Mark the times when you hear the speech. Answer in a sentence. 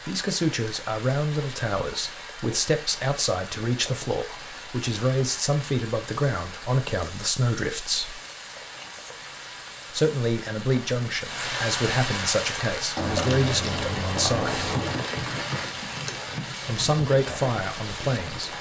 The speech can be heard from 0.1 to 8.2 s, from 9.9 to 14.6 s and from 16.6 to 18.5 s.